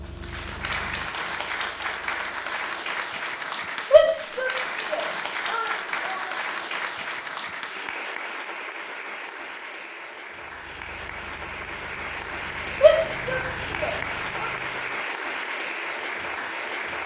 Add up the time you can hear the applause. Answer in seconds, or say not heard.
17 s.